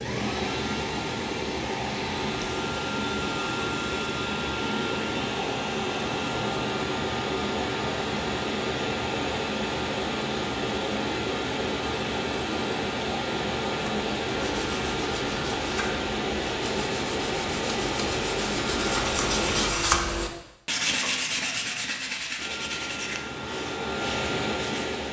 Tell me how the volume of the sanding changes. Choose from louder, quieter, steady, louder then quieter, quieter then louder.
louder then quieter.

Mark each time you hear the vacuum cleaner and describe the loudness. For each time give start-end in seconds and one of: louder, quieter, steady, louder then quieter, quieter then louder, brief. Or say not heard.
0.0-19.7 steady
22.4-25.0 brief.